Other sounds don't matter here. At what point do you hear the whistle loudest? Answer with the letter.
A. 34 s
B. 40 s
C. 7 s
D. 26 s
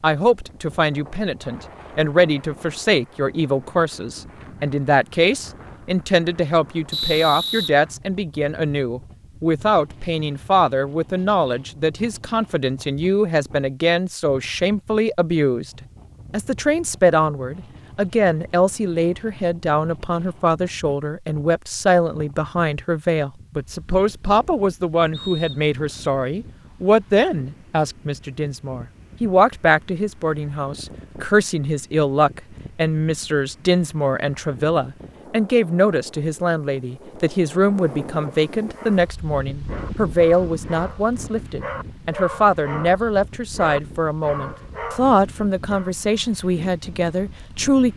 C.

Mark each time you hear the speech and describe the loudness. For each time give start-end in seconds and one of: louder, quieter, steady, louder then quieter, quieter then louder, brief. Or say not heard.
0.0-15.7 steady
16.3-47.9 steady.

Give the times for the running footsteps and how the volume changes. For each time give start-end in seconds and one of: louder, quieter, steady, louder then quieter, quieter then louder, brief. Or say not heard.
not heard.